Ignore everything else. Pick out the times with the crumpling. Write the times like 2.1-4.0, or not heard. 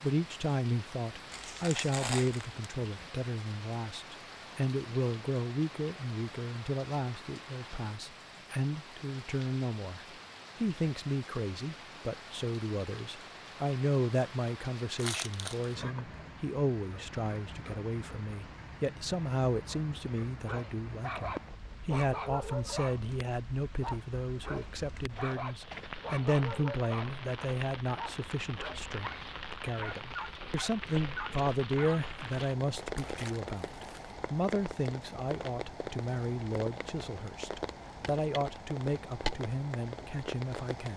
1.3-2.6, 14.9-15.8, 32.1-34.1.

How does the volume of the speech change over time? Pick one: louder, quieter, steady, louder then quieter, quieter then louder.
steady.